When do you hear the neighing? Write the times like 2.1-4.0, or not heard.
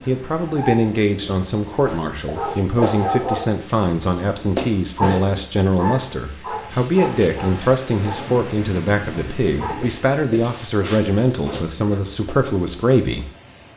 not heard.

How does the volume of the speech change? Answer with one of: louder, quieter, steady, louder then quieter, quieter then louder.
steady.